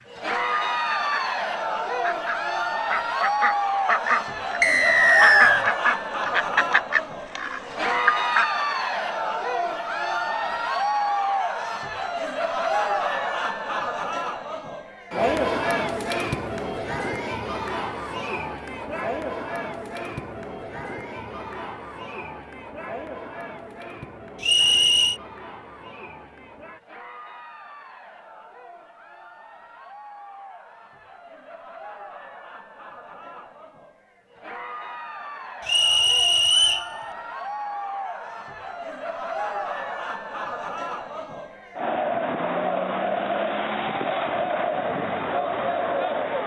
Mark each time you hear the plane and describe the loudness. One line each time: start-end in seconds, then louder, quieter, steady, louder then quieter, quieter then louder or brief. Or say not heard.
not heard.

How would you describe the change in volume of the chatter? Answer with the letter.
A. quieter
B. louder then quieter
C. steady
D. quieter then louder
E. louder
D.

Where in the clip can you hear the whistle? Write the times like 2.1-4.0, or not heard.
4.6-5.7, 24.4-25.2, 35.6-36.9.